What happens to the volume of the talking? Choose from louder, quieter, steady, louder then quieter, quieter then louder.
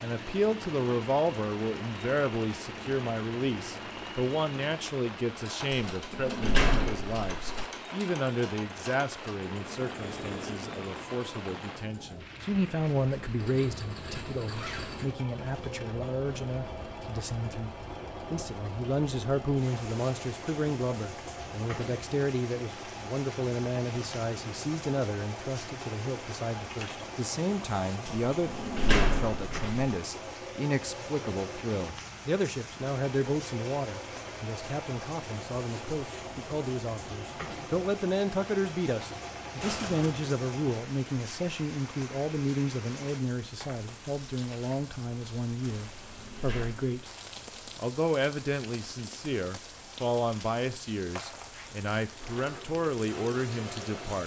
steady.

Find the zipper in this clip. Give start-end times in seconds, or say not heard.
13.5-15.2, 39.6-40.3.